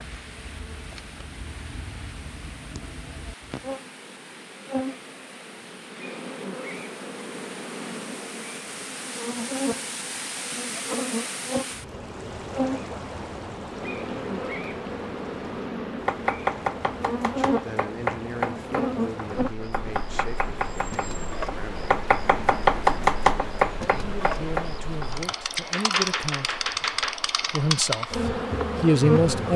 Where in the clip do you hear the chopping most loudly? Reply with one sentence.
The loudest moment of the chopping is at 23 seconds.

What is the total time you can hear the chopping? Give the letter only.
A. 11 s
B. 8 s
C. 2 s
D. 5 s
A.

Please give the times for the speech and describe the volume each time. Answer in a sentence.
The speech can be heard from 17.4 to 21.9 s, getting quieter; briefly from 23.8 to 26.7 s; and briefly from 27.5 to 29.5 s.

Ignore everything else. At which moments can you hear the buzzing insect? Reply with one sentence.
You can hear the buzzing insect from 0.0 to 29.5 s.